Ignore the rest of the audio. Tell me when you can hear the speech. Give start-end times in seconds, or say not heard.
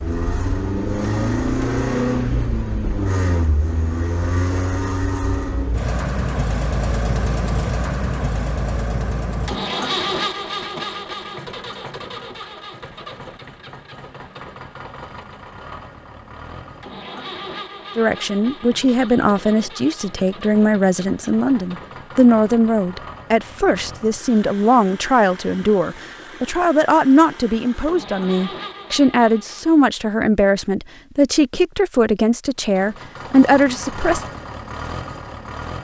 17.9-34.2.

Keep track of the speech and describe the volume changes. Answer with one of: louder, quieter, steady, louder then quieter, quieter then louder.
steady.